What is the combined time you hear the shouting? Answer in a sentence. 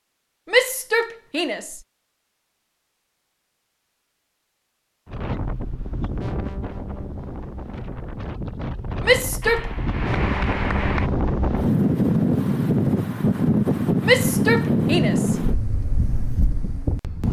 You can hear the shouting for 3 seconds altogether.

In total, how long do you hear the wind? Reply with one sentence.
The wind can be heard for 12 seconds in total.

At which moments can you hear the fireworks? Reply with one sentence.
The fireworks can't be heard in this clip.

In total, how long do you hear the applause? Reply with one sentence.
You can hear the applause for 2 seconds altogether.